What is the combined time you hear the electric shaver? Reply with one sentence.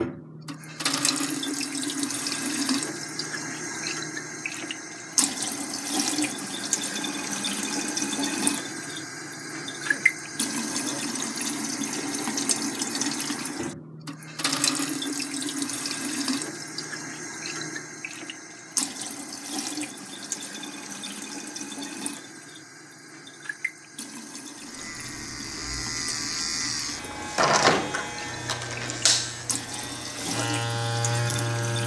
The electric shaver can be heard for 7 seconds in total.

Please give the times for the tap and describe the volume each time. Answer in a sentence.
You can hear the tap from 0.0 to 31.8 s, getting quieter.